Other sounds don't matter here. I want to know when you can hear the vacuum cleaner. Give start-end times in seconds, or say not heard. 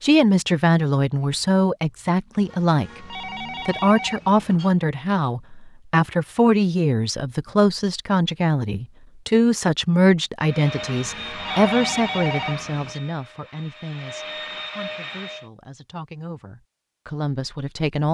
10.4-15.5.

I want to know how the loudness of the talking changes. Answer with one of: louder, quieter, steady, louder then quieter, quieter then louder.
quieter.